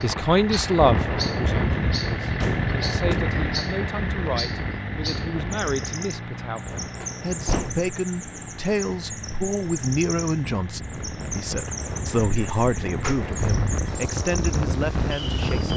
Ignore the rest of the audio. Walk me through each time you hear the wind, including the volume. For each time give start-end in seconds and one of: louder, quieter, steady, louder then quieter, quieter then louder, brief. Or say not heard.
0.0-15.7 quieter then louder.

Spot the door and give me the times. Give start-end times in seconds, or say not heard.
2.4-3.3, 7.0-7.9, 13.0-13.8.